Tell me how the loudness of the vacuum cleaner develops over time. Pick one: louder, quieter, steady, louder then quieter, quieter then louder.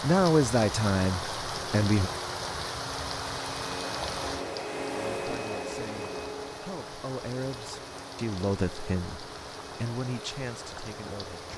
louder then quieter.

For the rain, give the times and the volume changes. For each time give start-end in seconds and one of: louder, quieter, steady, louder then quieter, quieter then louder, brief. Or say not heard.
0.0-11.5 quieter.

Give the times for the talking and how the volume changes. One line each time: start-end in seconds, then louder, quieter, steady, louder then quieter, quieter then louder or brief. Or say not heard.
0.0-2.1 brief
5.1-11.5 louder then quieter.